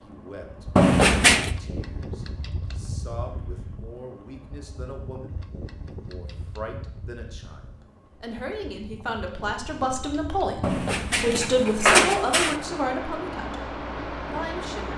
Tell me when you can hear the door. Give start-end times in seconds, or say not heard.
0.8-1.5, 10.6-12.6.